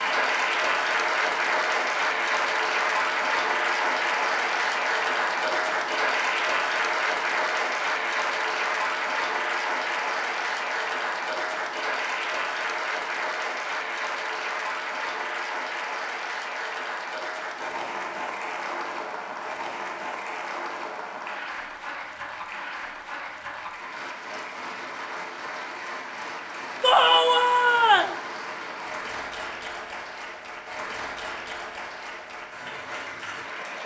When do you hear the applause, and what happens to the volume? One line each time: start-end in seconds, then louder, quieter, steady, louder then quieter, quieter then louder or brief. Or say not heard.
0.0-33.8 quieter.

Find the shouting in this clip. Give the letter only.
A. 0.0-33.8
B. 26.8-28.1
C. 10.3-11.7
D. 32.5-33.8
B.